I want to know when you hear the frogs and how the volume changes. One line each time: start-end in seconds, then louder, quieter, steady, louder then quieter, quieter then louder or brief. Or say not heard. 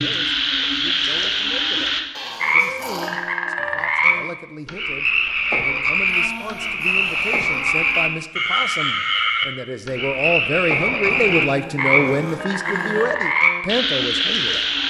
0.0-14.8 steady.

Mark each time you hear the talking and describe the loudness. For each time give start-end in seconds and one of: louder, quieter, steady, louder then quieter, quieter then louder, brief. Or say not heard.
0.0-14.6 louder.